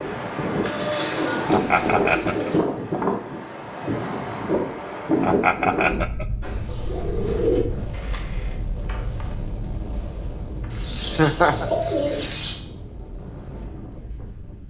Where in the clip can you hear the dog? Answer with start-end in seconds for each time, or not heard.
not heard.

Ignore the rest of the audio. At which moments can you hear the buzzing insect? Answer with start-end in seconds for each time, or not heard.
not heard.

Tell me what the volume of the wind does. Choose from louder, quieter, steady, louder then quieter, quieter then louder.
quieter.